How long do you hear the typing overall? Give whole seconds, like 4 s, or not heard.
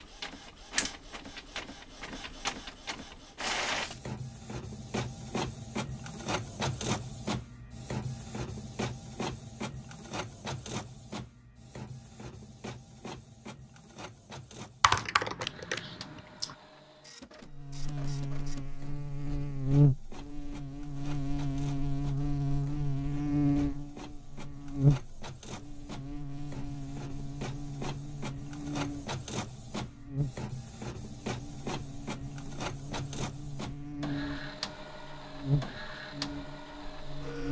2 s.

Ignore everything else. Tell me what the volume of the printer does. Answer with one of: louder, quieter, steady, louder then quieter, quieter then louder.
quieter then louder.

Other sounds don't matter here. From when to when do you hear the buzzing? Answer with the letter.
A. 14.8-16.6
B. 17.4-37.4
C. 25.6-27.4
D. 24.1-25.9
B.